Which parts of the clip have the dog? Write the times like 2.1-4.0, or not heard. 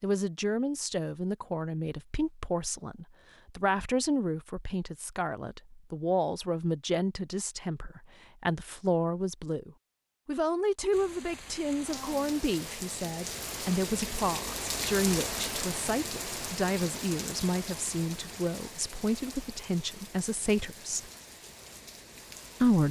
not heard.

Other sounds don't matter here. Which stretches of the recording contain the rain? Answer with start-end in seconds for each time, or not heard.
10.9-22.8.